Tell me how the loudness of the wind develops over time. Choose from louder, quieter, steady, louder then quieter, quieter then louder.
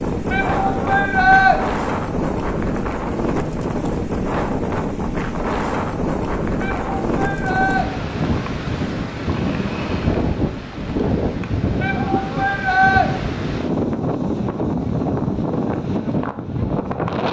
steady.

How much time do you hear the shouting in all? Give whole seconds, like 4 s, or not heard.
4 s.